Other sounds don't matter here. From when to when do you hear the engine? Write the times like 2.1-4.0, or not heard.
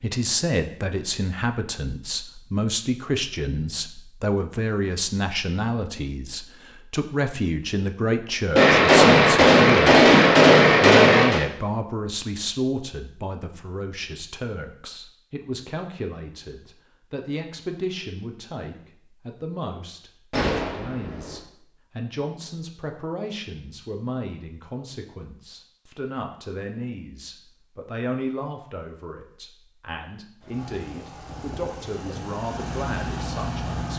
30.4-33.9.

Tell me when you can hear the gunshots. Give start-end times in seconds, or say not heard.
8.6-11.4, 20.3-21.4.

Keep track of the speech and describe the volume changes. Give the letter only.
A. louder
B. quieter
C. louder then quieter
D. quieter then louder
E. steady
B.